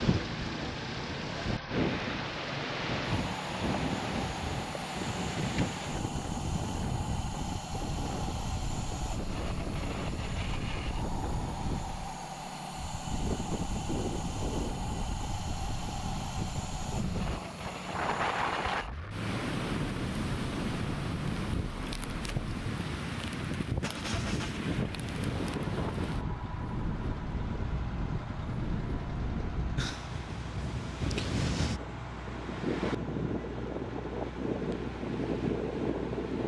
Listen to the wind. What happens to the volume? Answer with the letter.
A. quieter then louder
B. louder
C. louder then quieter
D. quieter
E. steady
E.